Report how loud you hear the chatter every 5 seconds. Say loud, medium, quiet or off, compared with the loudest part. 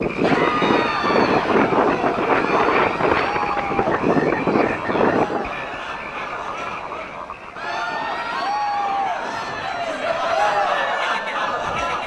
medium, medium, loud.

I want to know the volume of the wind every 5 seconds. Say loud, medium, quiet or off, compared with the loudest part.
loud, medium, quiet.